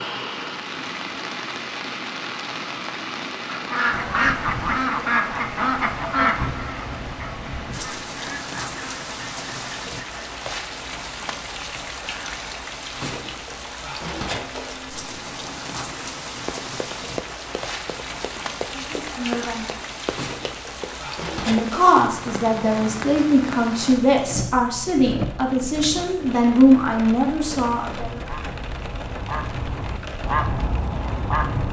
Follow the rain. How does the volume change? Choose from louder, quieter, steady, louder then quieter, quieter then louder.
steady.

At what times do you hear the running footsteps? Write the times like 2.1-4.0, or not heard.
16.4-22.4.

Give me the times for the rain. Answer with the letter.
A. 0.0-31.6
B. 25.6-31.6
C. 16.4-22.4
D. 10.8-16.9
A.